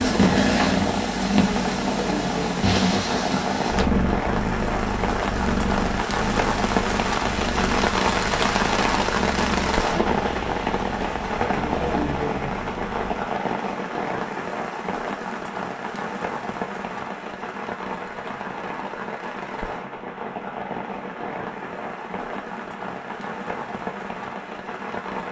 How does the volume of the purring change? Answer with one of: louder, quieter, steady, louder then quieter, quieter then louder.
quieter.